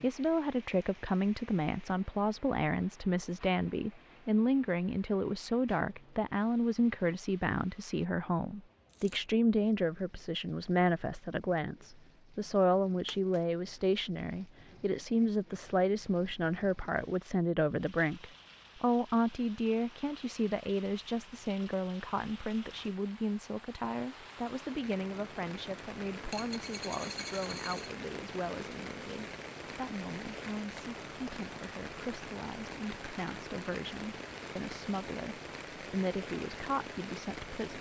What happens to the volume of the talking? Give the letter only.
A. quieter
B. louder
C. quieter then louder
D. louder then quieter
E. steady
A.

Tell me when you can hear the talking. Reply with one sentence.
The talking can be heard from 0.0 to 37.7 s.